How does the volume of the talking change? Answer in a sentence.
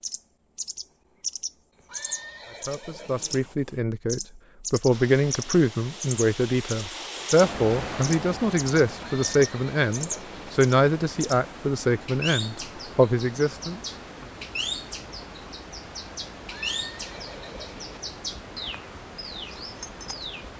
The loudness of the talking stays about the same.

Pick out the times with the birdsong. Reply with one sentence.
The birdsong can be heard from 0.0 to 20.4 s.